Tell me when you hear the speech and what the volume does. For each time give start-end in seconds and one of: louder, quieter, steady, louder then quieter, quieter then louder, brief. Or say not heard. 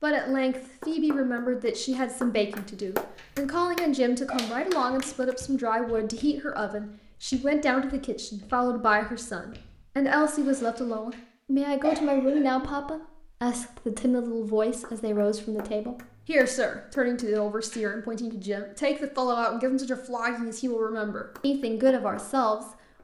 0.0-22.7 steady.